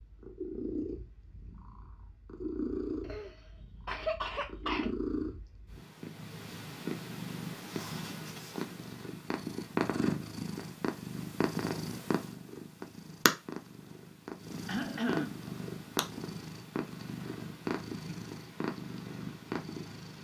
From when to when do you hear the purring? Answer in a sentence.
You can hear the purring from 0.0 to 20.1 s.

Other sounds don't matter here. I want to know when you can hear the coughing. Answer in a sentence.
You can hear the coughing from 3.0 to 4.9 s and from 14.7 to 15.4 s.